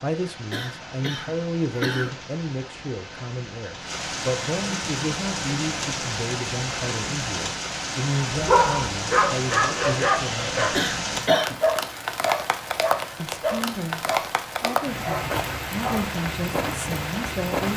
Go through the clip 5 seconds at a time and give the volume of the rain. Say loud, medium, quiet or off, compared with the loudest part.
medium, loud, loud, loud.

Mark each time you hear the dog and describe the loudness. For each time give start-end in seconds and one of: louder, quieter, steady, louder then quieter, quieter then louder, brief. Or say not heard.
8.3-16.1 quieter.